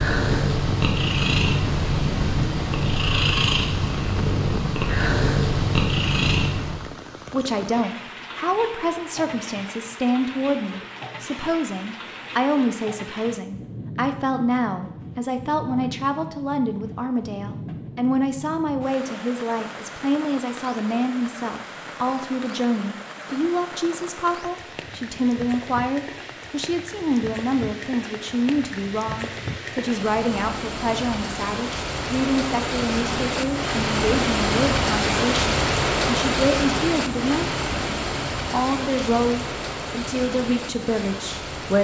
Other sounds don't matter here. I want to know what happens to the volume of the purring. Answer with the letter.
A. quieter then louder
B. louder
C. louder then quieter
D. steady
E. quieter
D.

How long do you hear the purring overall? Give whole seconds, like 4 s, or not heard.
7 s.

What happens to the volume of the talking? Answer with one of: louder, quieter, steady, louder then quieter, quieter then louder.
steady.